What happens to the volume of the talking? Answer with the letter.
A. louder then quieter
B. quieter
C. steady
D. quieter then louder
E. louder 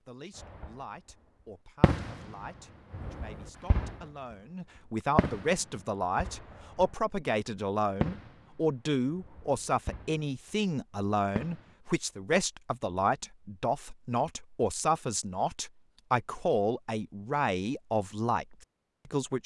E.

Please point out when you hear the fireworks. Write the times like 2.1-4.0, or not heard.
0.3-0.8, 1.8-2.3, 2.9-4.0, 5.2-7.0, 8.0-10.2, 11.3-11.8.